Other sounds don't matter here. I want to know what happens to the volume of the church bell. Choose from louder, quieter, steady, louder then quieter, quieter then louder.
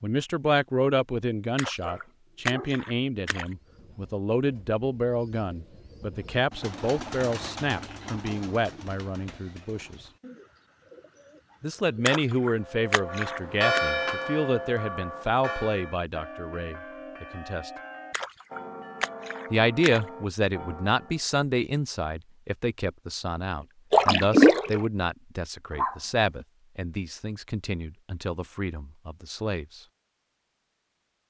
quieter.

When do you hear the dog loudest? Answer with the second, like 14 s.
26 s.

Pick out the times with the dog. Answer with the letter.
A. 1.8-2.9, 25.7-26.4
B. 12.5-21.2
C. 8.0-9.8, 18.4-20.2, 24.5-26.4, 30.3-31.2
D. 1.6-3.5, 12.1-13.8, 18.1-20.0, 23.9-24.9
A.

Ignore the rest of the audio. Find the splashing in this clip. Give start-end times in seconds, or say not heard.
1.6-3.5, 12.1-13.8, 18.1-20.0, 23.9-24.9.